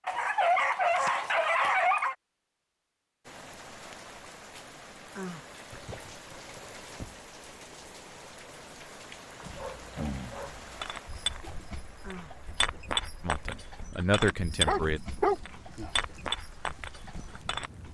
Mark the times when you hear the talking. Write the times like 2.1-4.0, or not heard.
13.2-15.0.